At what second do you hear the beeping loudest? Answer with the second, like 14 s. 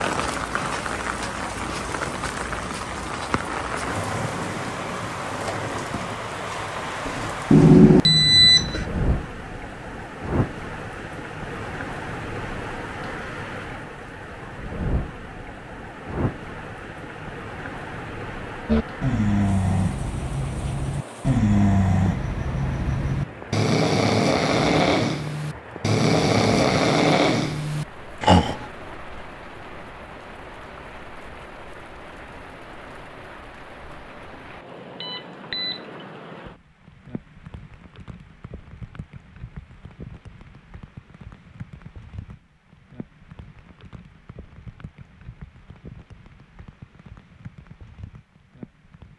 8 s.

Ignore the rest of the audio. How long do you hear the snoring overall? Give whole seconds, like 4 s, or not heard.
10 s.